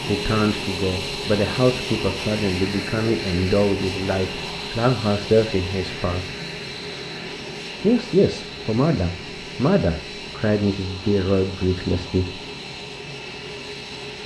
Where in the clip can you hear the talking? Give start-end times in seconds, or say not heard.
0.1-6.2, 7.8-12.4.